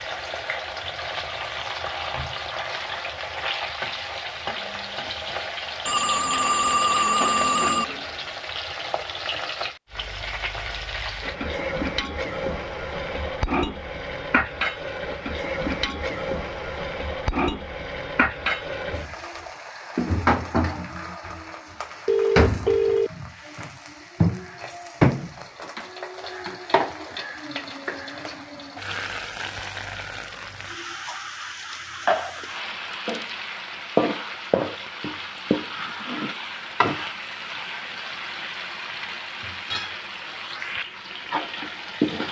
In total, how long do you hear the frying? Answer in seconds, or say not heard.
42 s.